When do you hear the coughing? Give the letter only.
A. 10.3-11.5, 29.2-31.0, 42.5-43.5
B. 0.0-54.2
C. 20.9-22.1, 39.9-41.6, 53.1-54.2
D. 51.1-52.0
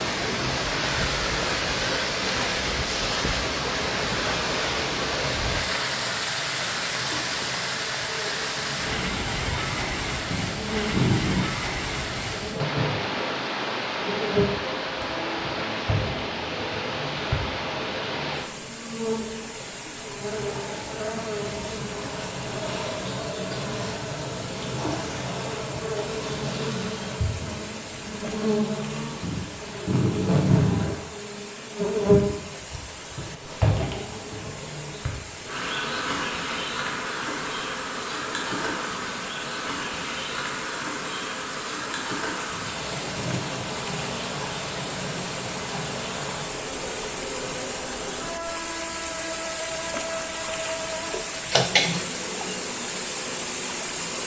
D.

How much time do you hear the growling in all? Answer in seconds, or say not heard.
4 s.